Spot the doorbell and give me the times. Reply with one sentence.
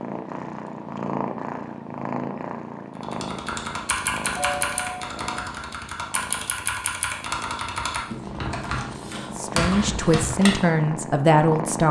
The doorbell can be heard from 4.3 to 5.5 s.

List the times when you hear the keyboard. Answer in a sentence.
You can hear the keyboard from 3.0 to 10.6 s.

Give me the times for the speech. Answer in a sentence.
The speech can be heard from 9.3 to 11.8 s.